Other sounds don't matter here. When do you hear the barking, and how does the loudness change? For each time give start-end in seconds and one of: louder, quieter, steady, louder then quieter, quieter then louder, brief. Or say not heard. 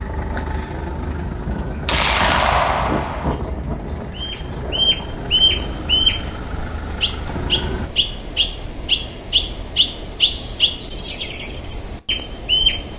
not heard.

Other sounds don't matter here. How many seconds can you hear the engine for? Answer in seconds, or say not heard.
8 s.